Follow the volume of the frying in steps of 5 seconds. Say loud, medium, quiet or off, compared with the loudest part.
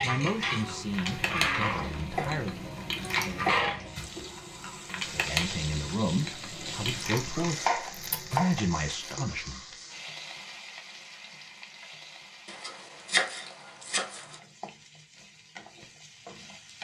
loud, medium, quiet, quiet.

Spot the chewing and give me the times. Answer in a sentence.
The chewing can be heard from 0.5 to 8.4 s.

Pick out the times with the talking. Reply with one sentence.
The talking can be heard from 0.0 to 2.6 s and from 4.9 to 9.8 s.